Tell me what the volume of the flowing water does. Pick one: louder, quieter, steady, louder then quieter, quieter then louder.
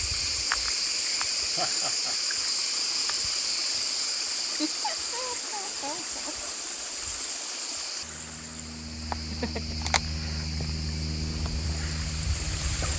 quieter.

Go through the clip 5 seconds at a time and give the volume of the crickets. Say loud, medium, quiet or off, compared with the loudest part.
loud, medium, medium.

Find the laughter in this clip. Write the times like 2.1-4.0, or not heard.
1.5-2.1, 4.6-6.3, 9.3-9.9.